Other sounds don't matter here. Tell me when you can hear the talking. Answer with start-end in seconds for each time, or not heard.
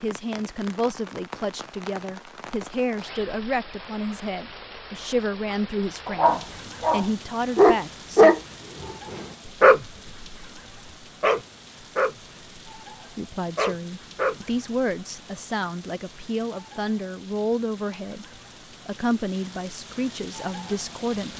0.0-8.3, 13.2-18.2, 18.9-21.3.